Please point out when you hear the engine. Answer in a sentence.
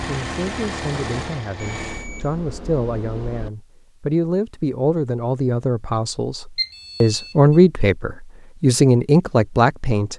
The engine can be heard from 0.0 to 2.1 s.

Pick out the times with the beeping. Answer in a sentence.
You can hear the beeping from 1.6 to 3.5 s and from 6.5 to 7.3 s.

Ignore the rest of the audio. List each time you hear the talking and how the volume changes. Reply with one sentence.
You can hear the talking from 0.1 to 10.1 s, getting louder.